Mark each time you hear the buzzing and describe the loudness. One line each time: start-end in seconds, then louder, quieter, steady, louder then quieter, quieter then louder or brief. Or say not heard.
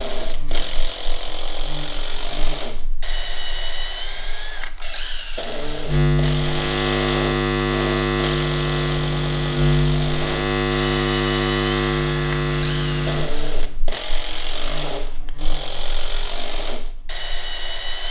0.2-18.0 louder then quieter.